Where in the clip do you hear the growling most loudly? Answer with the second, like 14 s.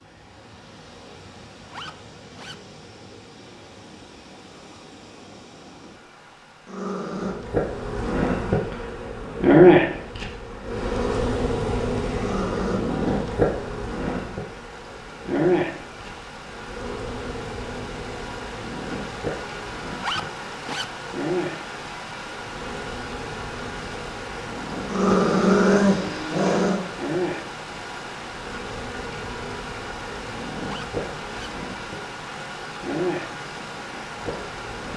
26 s.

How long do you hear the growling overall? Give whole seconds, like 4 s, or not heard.
3 s.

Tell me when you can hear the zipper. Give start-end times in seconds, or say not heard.
1.6-2.5, 19.9-20.9, 30.6-31.5.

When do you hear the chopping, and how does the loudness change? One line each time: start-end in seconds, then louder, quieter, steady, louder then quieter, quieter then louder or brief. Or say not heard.
not heard.